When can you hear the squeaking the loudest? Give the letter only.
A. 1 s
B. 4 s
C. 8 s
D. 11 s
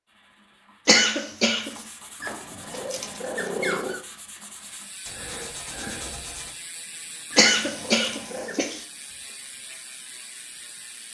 B.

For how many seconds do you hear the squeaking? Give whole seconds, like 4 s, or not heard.
3 s.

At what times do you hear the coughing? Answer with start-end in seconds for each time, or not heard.
0.8-1.8, 7.3-8.8.